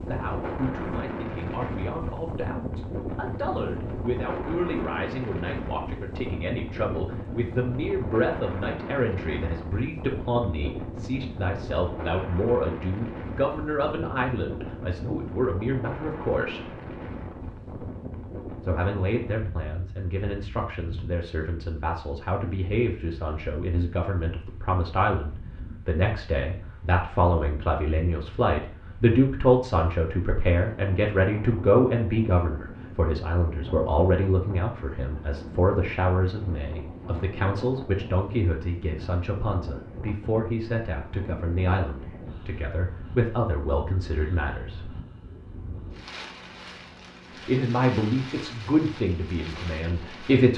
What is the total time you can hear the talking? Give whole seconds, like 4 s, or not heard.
46 s.